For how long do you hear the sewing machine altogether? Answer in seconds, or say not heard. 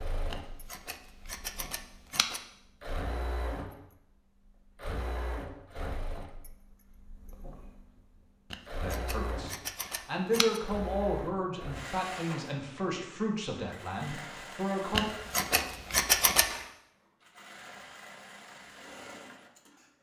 20 s.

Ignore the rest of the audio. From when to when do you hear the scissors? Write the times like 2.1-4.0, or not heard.
0.3-2.4, 8.5-10.6, 14.9-16.5.